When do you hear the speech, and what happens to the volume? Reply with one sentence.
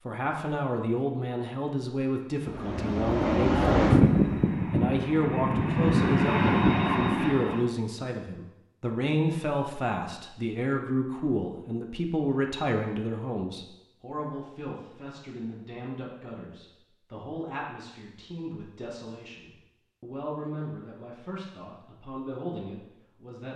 You can hear the speech from 0.1 to 23.5 s, getting quieter.